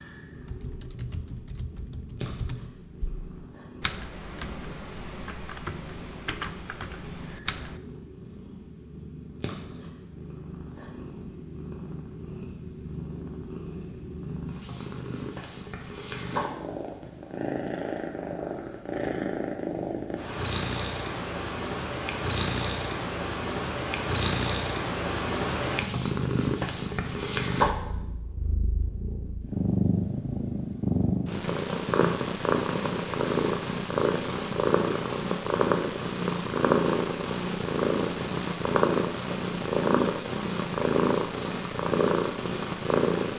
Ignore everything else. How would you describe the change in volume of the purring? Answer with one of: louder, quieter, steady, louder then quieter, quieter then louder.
louder.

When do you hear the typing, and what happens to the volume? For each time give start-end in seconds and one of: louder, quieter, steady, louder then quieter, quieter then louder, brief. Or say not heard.
0.3-7.8 steady.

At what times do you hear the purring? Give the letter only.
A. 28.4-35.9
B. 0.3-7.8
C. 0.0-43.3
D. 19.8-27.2
C.